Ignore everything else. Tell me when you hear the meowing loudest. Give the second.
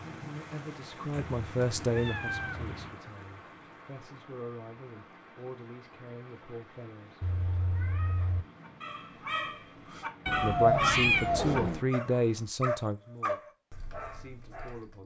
11 s.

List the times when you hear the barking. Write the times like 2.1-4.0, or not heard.
8.6-15.0.